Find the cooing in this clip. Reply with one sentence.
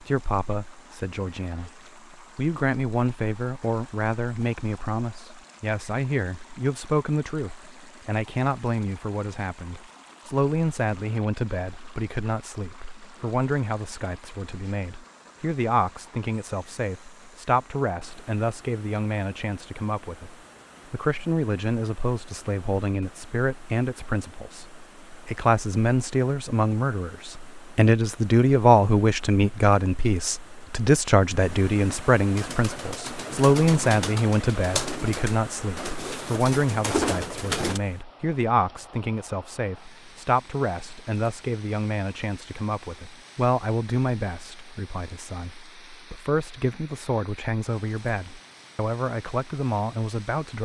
The cooing can be heard from 32.4 to 37.8 s.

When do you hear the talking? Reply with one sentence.
You can hear the talking from 0.0 to 50.6 s.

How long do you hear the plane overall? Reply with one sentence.
The plane can't be heard in this clip.